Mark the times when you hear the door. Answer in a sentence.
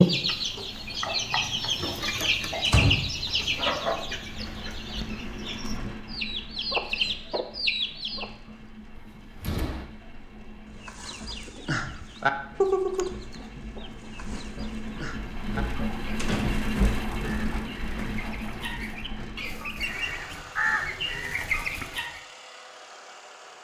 You can hear the door from 2.6 to 3.6 s, from 8.9 to 9.8 s and from 16.1 to 16.7 s.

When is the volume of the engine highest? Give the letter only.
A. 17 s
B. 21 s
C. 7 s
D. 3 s
A.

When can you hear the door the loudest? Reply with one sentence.
The volume of the door peaks at 3 seconds.